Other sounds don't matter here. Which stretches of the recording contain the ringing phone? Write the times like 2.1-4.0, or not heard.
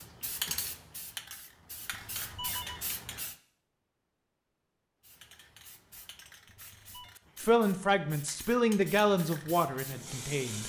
1.9-2.9, 6.5-7.2.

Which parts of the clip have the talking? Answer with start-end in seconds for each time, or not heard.
7.4-10.6.